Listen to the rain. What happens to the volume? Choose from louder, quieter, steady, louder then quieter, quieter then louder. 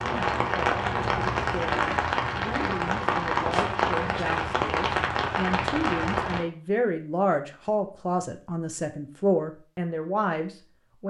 steady.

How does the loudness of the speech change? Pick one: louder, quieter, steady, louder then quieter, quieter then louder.
louder.